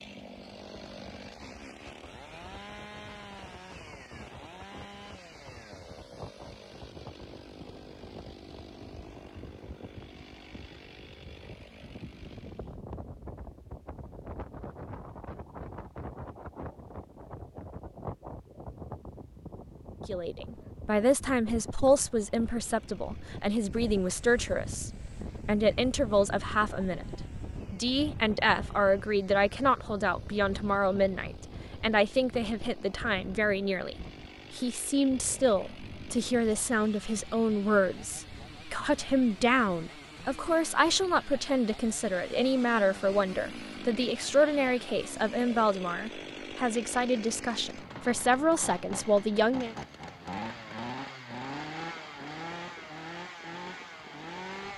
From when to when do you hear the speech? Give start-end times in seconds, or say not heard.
20.1-27.1, 27.7-49.8.